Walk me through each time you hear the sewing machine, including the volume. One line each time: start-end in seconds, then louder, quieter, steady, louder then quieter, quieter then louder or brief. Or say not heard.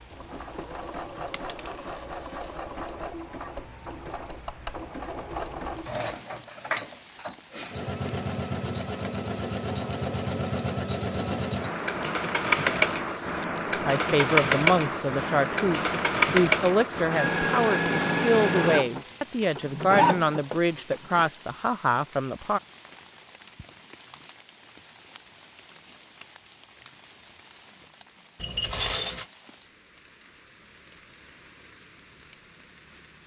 0.0-21.3 louder.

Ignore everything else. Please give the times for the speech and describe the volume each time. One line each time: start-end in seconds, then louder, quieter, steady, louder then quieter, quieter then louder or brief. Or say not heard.
13.8-22.6 steady.